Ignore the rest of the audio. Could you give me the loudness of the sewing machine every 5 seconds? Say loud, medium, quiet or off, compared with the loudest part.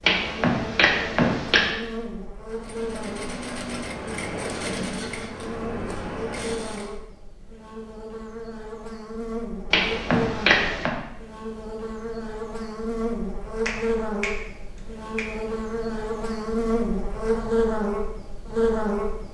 loud, loud, off, off.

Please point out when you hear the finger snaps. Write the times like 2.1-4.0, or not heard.
0.0-1.7, 9.7-10.9, 13.7-15.3.